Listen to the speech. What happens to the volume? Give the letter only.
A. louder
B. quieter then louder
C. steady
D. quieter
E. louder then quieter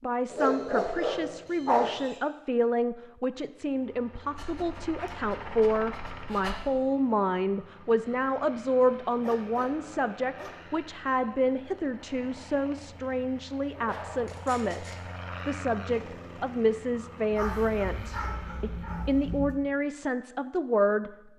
C.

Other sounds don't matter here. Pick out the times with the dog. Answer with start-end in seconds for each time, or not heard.
0.3-2.1, 4.3-6.6, 9.1-10.7, 13.8-15.1, 17.3-19.6.